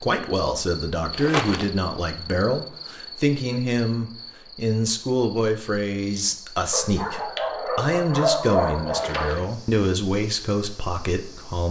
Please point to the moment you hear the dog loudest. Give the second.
8 s.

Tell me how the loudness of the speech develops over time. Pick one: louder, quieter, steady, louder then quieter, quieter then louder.
steady.